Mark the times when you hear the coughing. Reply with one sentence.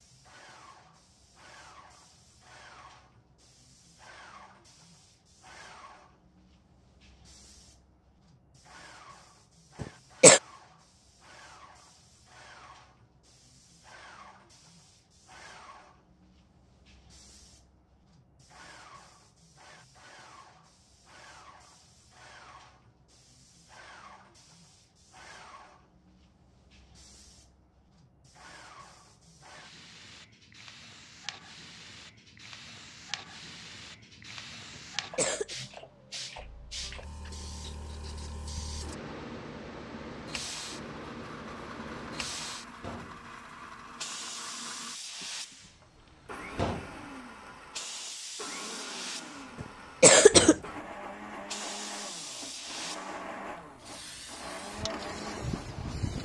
The coughing can be heard from 9.8 to 10.4 s, from 34.8 to 35.5 s and from 49.6 to 50.5 s.